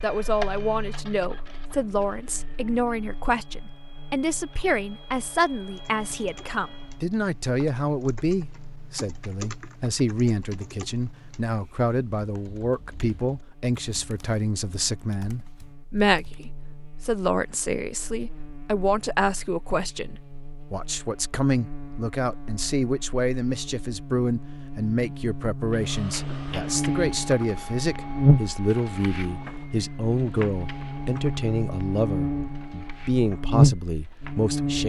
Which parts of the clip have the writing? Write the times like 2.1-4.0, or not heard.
not heard.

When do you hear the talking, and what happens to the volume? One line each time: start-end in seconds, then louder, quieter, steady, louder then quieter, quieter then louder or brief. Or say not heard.
0.0-34.8 steady.